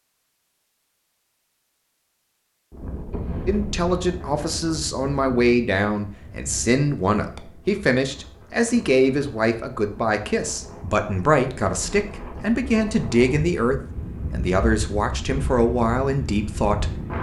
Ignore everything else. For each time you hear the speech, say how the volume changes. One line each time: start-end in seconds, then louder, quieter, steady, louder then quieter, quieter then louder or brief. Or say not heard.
3.5-17.0 steady.